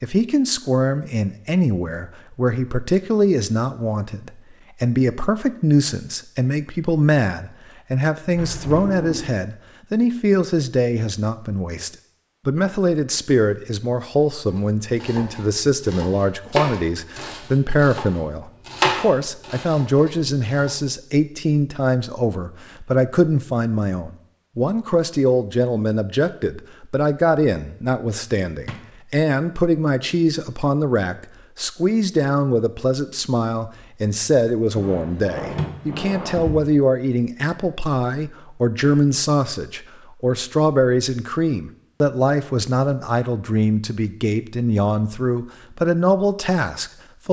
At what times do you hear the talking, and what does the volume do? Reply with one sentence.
You can hear the talking from 0.0 to 47.2 s, at a steady volume.